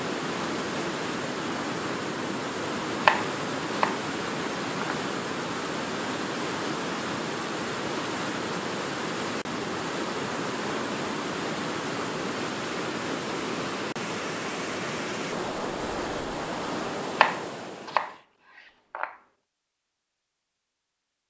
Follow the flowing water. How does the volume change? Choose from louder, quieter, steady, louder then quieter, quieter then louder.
steady.